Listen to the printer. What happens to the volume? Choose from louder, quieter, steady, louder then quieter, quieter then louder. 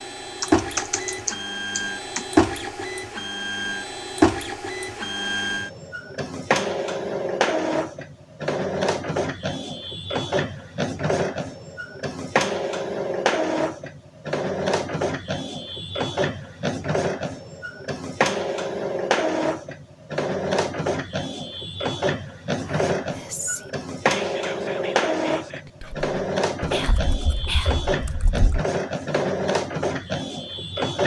steady.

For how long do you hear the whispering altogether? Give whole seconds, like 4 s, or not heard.
5 s.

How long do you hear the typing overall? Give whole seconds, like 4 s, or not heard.
4 s.